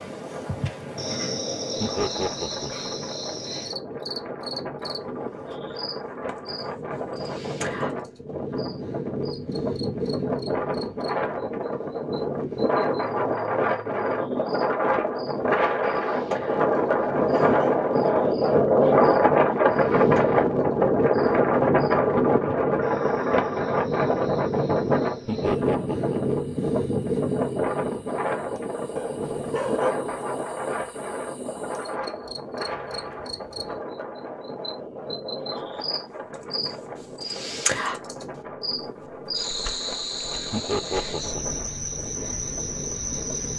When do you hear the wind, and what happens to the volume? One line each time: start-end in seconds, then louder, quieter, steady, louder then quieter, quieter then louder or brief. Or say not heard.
0.0-43.5 louder then quieter.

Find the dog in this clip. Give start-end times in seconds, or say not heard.
16.7-17.7, 28.9-29.9.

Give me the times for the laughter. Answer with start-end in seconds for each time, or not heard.
1.8-2.9, 25.2-26.4, 40.5-41.6.